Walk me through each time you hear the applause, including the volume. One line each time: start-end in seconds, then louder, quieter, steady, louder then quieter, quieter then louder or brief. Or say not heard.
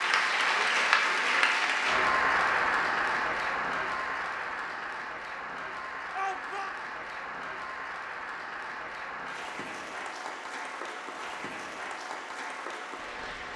0.0-13.5 quieter.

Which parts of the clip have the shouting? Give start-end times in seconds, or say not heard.
6.1-6.8.